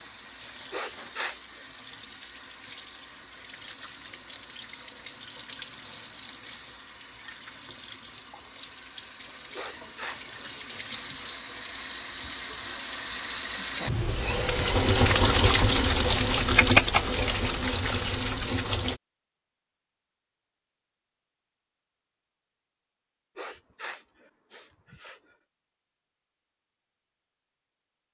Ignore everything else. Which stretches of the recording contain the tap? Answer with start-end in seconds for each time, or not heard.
0.0-19.0.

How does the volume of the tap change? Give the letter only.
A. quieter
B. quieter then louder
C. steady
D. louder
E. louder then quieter
D.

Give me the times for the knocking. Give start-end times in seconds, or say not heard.
not heard.